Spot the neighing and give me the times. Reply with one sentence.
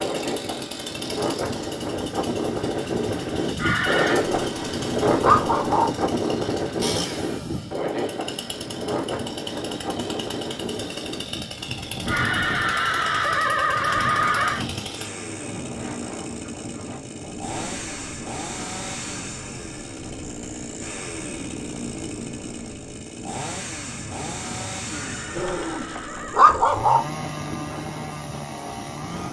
You can hear the neighing from 3.5 to 4.2 s, from 12.1 to 14.7 s and from 24.9 to 26.6 s.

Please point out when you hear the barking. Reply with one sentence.
The barking can be heard from 4.2 to 5.9 s and from 25.4 to 27.1 s.